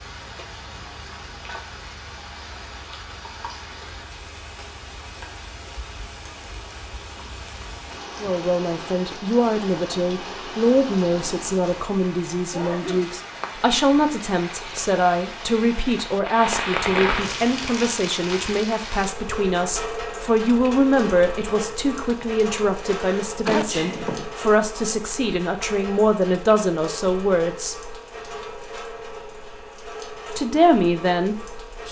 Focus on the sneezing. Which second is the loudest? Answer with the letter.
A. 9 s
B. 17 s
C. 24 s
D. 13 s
C.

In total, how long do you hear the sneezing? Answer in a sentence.
The sneezing can be heard for 2 seconds in total.